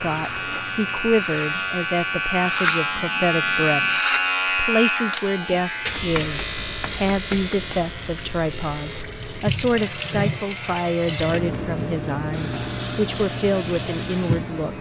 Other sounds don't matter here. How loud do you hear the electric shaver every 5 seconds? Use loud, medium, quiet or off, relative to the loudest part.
loud, medium, quiet.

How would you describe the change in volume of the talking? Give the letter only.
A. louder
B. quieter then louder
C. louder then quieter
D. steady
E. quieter
D.